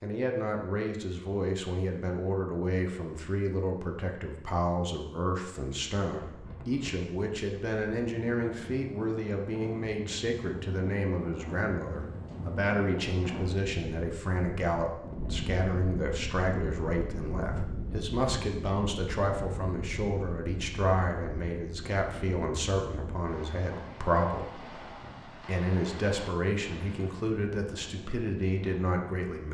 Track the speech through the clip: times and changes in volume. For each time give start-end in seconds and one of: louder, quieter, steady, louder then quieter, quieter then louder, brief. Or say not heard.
0.0-29.4 steady.